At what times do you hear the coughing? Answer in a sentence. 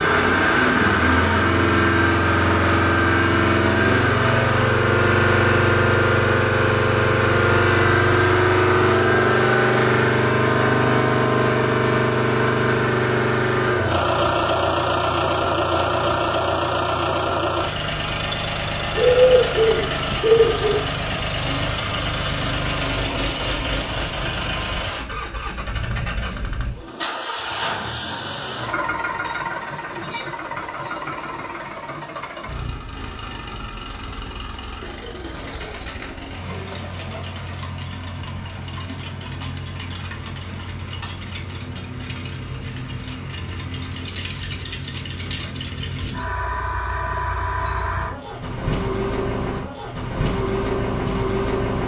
The coughing can't be heard in this clip.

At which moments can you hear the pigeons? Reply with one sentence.
The pigeons can be heard from 18.9 to 20.9 s and from 34.8 to 37.7 s.